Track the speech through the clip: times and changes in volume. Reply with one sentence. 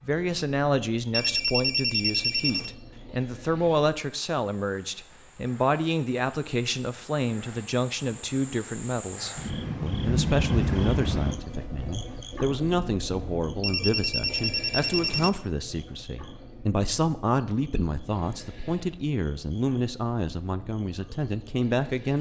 You can hear the speech from 0.1 to 22.1 s, at a steady volume.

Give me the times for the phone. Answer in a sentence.
The phone can be heard from 1.1 to 2.7 s and from 13.6 to 15.3 s.